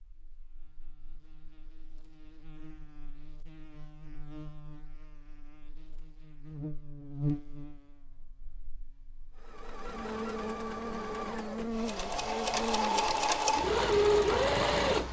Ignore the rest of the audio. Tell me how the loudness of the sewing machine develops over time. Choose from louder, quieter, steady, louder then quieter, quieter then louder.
louder.